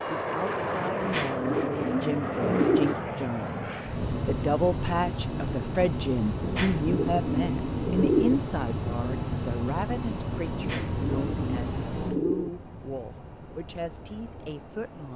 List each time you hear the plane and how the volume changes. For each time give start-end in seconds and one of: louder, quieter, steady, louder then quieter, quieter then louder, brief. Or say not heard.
0.0-15.1 quieter.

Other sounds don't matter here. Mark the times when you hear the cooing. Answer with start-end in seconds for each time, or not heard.
1.0-3.0, 6.4-8.4, 10.6-12.5.